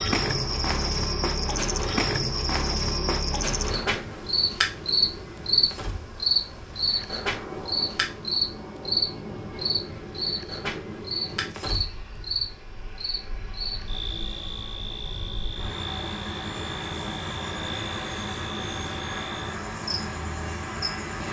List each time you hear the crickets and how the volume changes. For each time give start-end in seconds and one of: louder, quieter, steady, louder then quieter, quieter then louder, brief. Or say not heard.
0.0-21.2 quieter.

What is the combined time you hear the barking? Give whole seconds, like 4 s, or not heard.
not heard.